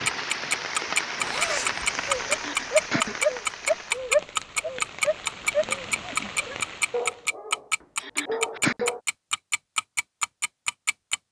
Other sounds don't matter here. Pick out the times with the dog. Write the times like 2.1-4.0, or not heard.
2.0-9.0.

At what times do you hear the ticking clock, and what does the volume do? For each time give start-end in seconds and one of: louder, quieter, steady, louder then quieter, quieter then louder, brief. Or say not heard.
0.1-11.2 quieter.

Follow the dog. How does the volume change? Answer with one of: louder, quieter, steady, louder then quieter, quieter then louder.
quieter.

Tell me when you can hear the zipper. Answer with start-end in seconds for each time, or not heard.
1.1-2.2.